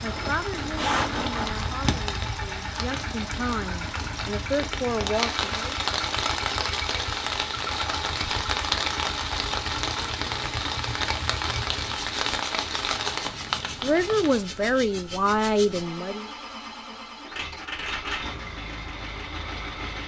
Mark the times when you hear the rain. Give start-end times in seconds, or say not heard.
0.0-14.4.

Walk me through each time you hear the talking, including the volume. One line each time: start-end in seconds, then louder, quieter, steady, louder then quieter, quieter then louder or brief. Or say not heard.
0.0-5.8 louder
13.8-16.3 brief.